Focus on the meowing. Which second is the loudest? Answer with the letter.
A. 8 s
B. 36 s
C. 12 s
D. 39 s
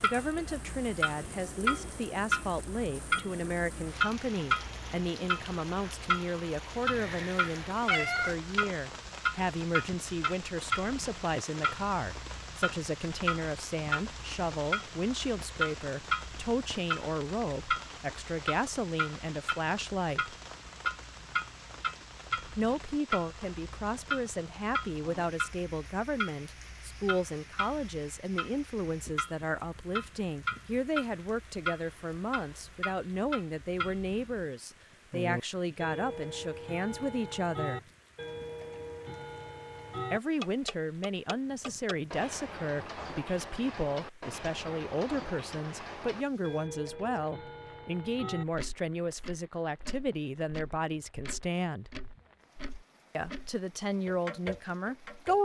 A.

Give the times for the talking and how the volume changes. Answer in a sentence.
You can hear the talking from 0.0 to 20.4 s, at a steady volume; from 22.6 to 37.9 s, at a steady volume; from 40.1 to 51.9 s, at a steady volume; and briefly from 53.1 to 55.3 s.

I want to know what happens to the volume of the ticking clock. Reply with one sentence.
The volume of the ticking clock goes down.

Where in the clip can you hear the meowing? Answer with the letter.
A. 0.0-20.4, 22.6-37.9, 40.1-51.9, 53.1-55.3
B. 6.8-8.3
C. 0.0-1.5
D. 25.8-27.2
B.